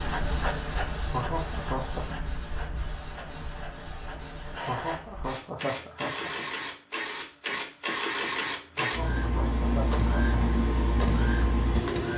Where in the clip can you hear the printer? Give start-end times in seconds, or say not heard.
0.0-12.1.